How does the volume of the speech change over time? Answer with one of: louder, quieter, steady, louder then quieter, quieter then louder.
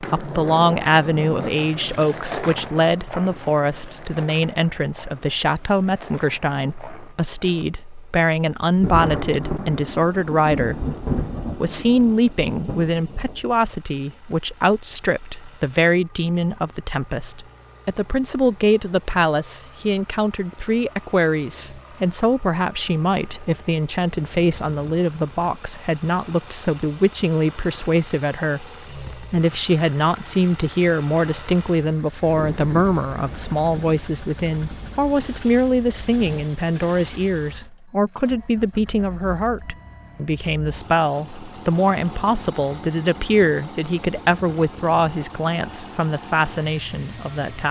steady.